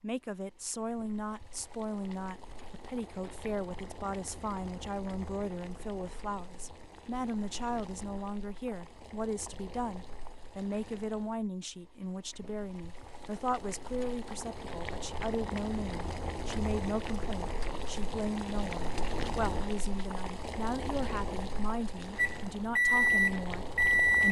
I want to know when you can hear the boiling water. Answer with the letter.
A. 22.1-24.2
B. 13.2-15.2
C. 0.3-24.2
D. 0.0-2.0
C.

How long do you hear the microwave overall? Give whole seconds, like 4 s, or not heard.
2 s.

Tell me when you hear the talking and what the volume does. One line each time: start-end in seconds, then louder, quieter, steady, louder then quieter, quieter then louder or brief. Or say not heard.
0.0-24.2 steady.